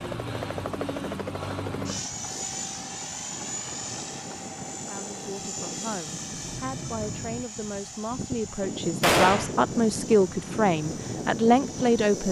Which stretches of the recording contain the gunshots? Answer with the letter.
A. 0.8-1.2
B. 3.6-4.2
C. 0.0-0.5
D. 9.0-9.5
D.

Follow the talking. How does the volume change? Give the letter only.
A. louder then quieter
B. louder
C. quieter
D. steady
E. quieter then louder
B.